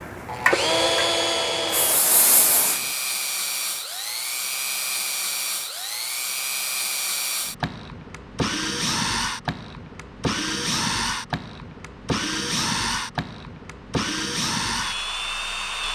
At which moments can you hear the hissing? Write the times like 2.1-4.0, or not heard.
0.0-2.9.